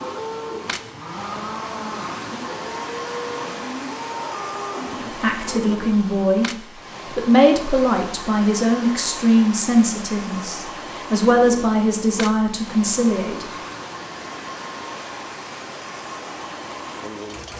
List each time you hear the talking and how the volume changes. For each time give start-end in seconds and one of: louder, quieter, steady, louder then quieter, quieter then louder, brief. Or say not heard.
5.2-13.4 steady.